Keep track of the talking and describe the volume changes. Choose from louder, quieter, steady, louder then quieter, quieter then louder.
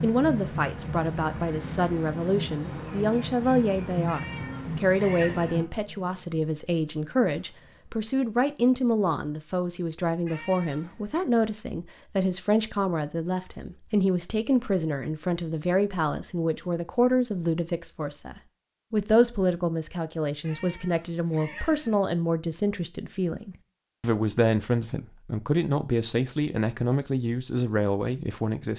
steady.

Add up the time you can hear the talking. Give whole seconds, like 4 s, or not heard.
29 s.